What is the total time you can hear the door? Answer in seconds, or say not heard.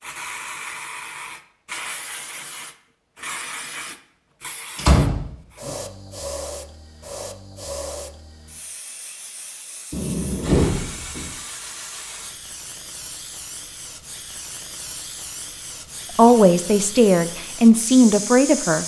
2 s.